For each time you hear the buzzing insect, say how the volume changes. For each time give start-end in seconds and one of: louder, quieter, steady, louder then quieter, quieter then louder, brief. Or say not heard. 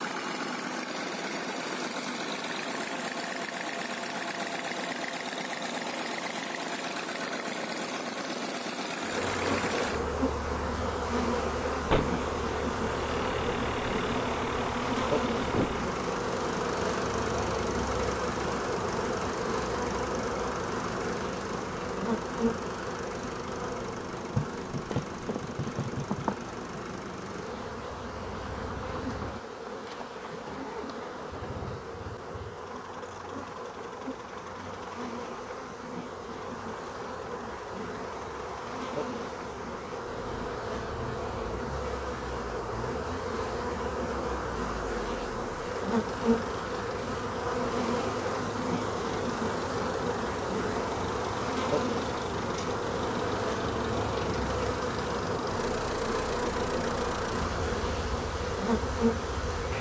9.0-59.7 quieter then louder.